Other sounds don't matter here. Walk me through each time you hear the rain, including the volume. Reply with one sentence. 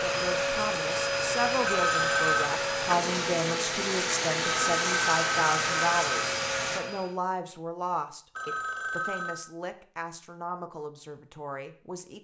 You can hear the rain from 0.0 to 6.8 s, getting louder.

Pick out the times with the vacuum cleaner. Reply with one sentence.
You can hear the vacuum cleaner from 0.0 to 7.2 s.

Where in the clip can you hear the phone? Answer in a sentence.
The phone can be heard from 1.6 to 2.5 s, from 4.4 to 6.1 s and from 8.3 to 9.4 s.